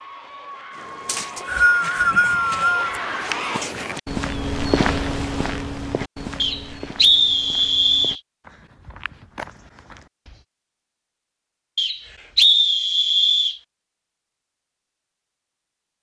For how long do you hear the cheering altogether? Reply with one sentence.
You can hear the cheering for 4 seconds altogether.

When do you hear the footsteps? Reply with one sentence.
The footsteps can be heard from 0.7 to 10.4 s.